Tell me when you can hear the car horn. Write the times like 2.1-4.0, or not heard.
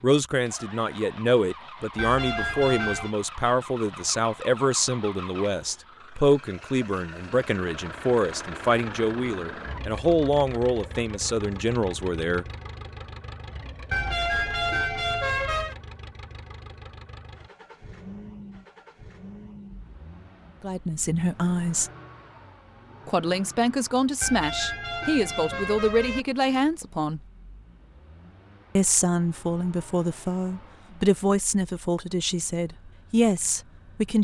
1.9-3.1, 13.9-15.8, 24.2-26.2.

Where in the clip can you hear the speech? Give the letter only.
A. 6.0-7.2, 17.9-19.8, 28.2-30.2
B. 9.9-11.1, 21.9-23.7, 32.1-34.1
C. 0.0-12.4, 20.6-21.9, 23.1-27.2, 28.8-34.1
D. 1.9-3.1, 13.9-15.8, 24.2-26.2
C.